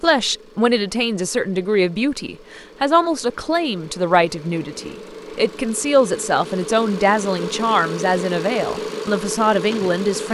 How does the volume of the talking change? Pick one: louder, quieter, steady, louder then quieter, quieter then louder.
steady.